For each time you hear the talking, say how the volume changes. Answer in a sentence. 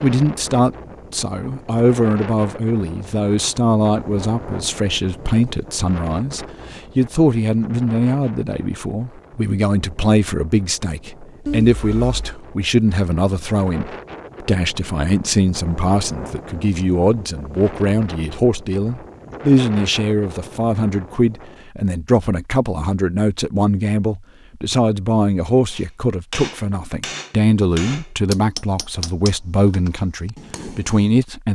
You can hear the talking from 0.0 to 31.5 s, at a steady volume.